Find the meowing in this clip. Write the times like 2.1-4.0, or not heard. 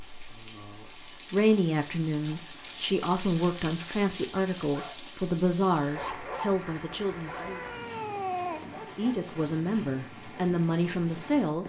7.3-8.8.